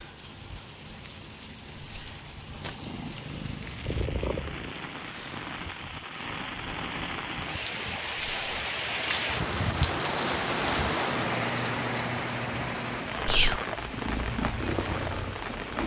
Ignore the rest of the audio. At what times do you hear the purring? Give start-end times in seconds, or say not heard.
2.4-4.8, 12.9-15.8.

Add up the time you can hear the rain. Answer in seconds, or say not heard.
16 s.